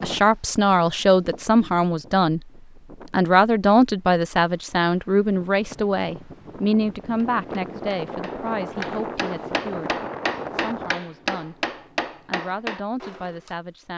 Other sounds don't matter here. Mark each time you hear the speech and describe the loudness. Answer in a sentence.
You can hear the speech briefly from 0.0 to 2.4 s; from 3.1 to 11.6 s, getting quieter; and briefly from 12.2 to 13.9 s.